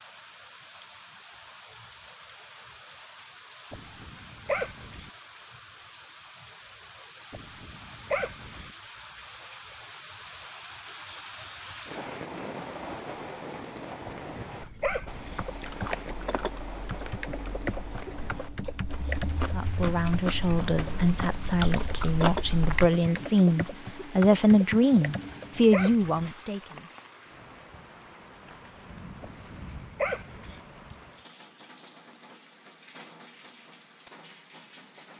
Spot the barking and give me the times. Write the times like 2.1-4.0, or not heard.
3.7-5.1, 7.3-8.7, 14.1-15.4, 25.1-26.4, 29.2-30.6.